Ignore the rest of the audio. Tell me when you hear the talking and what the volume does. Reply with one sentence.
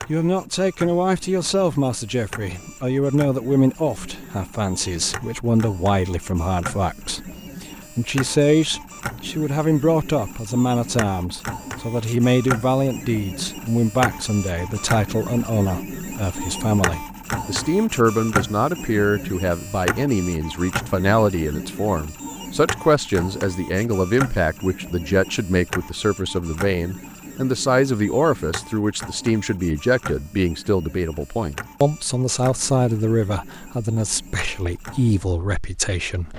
The talking can be heard from 0.1 to 36.3 s, at a steady volume.